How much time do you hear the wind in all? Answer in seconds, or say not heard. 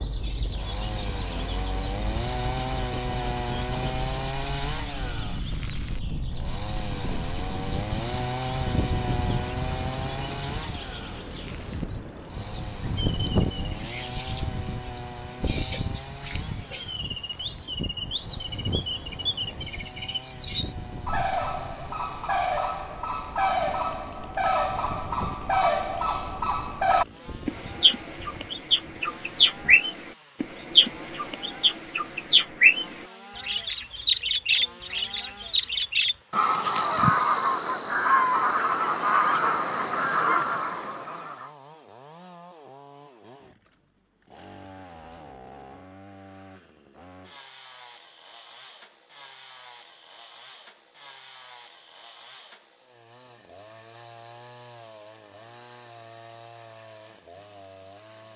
30 s.